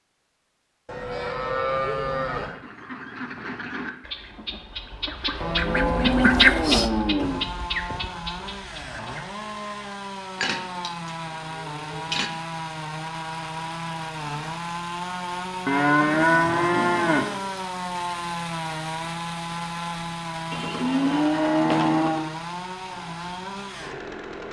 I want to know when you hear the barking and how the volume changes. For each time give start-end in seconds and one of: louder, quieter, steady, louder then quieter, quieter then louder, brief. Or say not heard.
not heard.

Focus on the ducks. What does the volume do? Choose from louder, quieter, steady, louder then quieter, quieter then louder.
louder then quieter.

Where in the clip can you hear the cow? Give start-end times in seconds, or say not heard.
0.8-2.5, 5.4-7.4, 10.3-12.3, 15.7-17.4, 20.5-22.3.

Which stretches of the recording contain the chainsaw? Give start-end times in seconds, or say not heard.
7.2-24.4.